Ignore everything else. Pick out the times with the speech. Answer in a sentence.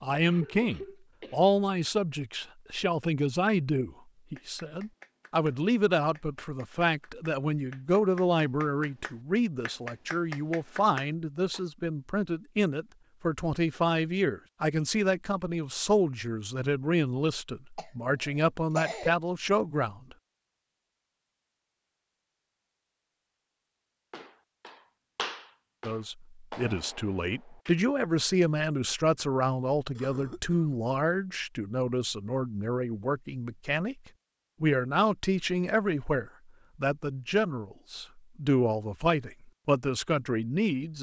You can hear the speech from 0.0 to 20.1 s, from 25.9 to 34.0 s and from 34.6 to 40.9 s.